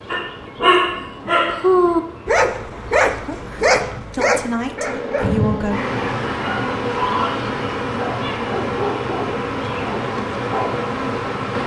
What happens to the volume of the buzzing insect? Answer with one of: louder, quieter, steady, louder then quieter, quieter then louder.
louder.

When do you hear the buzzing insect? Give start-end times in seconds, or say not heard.
0.0-11.6.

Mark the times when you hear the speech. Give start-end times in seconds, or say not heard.
4.2-5.8.